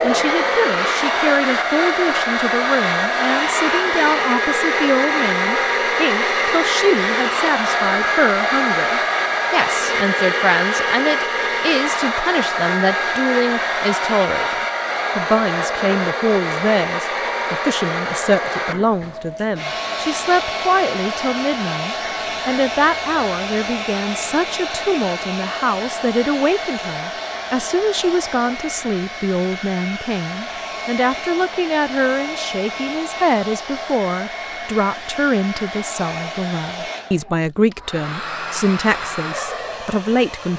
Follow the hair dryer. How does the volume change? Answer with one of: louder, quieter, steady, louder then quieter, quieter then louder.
quieter.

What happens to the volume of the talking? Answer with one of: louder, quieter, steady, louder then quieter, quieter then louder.
steady.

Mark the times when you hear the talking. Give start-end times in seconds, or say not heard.
0.0-40.5.